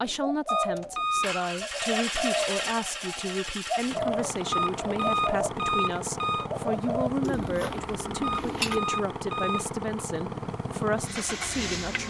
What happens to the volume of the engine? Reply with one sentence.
The volume of the engine stays about the same.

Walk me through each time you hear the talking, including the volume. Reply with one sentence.
You can hear the talking from 0.0 to 12.0 s, at a steady volume.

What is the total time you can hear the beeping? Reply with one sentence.
You can hear the beeping for 4 seconds altogether.